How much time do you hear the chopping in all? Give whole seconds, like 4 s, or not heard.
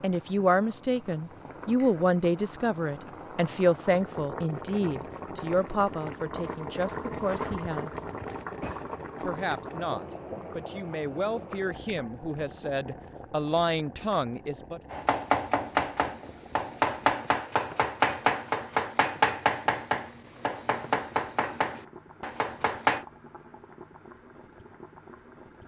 8 s.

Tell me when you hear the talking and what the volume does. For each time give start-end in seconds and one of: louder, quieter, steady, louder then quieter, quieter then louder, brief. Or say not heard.
0.0-8.1 quieter
9.2-14.8 louder.